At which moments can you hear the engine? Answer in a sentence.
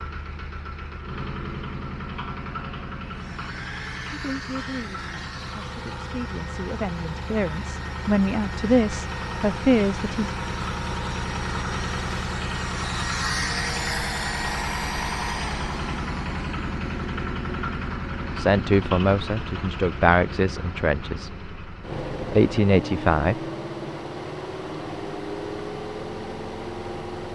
You can hear the engine from 0.0 to 27.2 s.